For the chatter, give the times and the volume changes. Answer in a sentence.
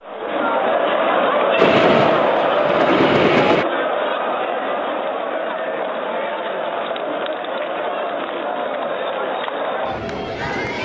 The chatter can be heard from 0.0 to 10.7 s, getting quieter.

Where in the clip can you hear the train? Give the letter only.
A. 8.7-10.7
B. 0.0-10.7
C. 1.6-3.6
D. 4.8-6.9
C.